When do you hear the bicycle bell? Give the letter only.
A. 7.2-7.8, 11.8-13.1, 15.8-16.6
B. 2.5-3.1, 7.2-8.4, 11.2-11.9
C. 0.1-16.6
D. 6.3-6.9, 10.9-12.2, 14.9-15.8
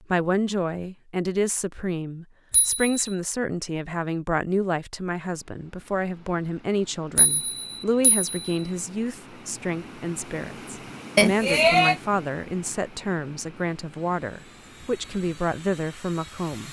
B.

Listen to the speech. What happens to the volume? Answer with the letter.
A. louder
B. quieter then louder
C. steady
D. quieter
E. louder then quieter
C.